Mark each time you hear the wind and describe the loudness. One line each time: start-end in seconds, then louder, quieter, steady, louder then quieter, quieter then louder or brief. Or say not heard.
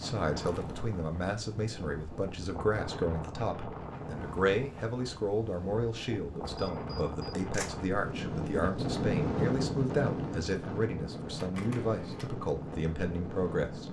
0.0-13.8 louder then quieter.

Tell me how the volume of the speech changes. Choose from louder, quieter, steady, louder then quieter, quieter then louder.
steady.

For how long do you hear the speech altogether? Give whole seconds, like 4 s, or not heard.
14 s.